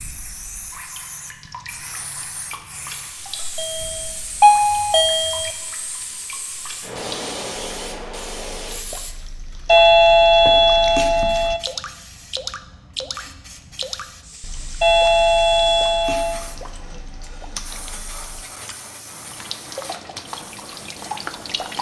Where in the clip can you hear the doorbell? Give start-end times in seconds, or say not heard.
3.5-5.5, 9.7-11.6, 14.8-16.4.